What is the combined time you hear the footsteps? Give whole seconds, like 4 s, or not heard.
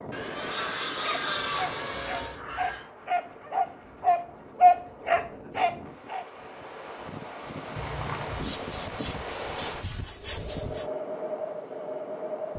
not heard.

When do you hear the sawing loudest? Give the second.
1 s.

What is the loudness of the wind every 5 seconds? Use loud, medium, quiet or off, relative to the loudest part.
medium, loud, loud.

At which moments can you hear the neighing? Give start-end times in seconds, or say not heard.
1.4-2.9, 7.8-8.5.